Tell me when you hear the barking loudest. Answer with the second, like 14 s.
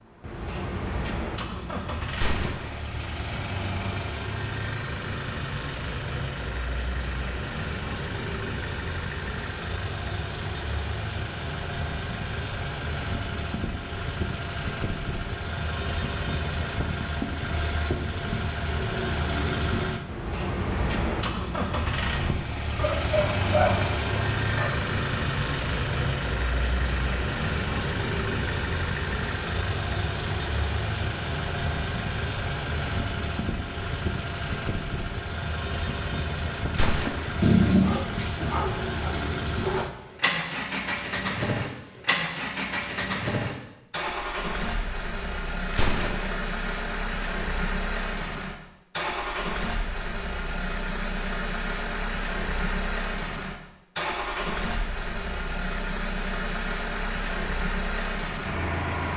38 s.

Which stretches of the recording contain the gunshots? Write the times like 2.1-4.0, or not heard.
2.1-2.8, 36.7-37.4, 45.7-46.4.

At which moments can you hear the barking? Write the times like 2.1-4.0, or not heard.
22.8-24.8, 37.4-39.9.